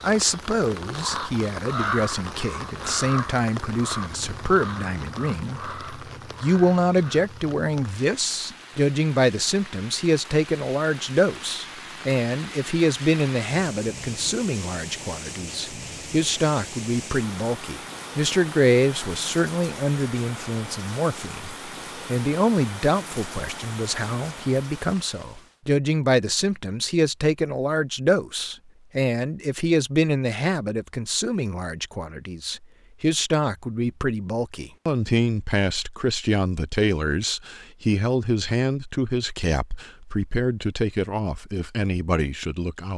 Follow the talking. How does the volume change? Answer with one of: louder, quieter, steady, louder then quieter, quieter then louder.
steady.